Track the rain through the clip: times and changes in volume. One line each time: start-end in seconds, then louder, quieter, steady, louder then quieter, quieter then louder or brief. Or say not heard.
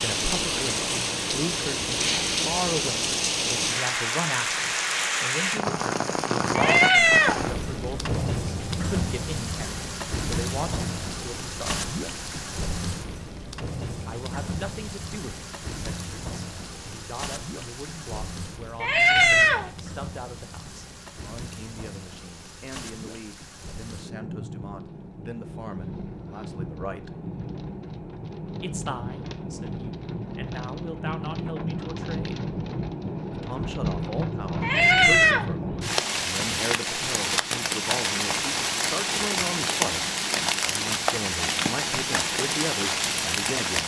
0.0-43.8 quieter then louder.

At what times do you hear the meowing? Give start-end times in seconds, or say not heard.
6.5-7.5, 18.8-19.7, 34.6-35.5.